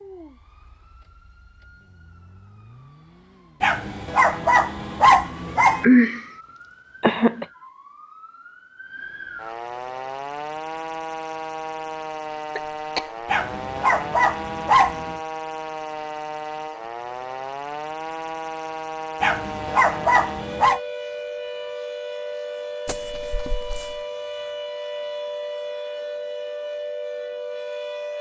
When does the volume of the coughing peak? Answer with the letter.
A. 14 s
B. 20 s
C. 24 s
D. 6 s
D.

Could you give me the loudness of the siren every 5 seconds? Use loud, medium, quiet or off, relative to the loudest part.
quiet, medium, loud, loud, loud, loud.